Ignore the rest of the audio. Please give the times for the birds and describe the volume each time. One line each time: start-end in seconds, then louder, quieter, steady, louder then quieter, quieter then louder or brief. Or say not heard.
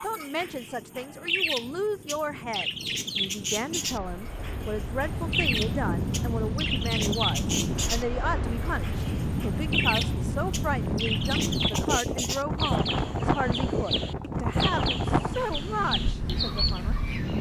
0.0-17.3 steady.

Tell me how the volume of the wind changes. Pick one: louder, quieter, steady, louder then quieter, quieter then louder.
louder.